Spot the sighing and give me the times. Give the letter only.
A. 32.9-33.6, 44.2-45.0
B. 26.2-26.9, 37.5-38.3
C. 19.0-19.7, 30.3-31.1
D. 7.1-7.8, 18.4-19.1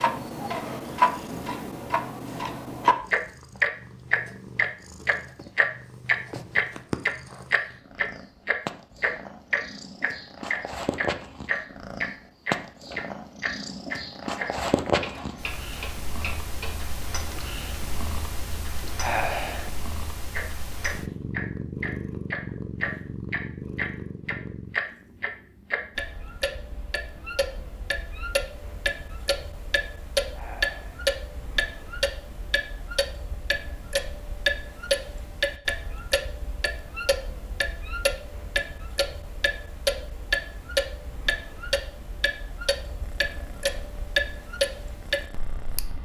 C.